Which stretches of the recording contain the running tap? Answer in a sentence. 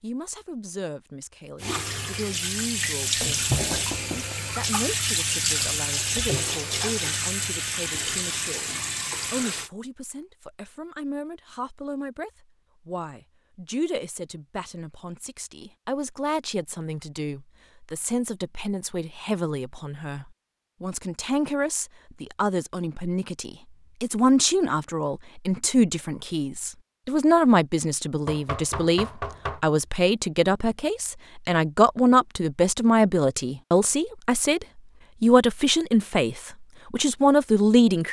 You can hear the running tap from 1.6 to 9.7 s.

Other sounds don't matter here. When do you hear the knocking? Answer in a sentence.
The knocking can be heard from 3.5 to 4.3 s and from 28.2 to 29.6 s.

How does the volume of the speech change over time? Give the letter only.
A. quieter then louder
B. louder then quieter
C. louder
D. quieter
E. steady
C.